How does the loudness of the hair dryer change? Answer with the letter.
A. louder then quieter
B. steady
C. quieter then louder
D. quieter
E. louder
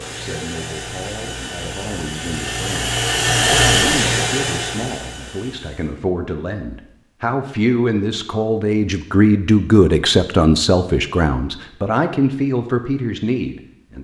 A.